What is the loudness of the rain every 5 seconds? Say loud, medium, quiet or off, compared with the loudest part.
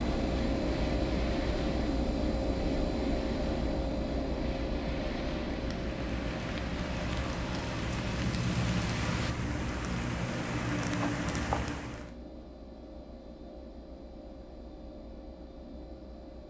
medium, loud, loud, off.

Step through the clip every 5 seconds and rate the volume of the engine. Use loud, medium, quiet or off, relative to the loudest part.
loud, medium, quiet, quiet.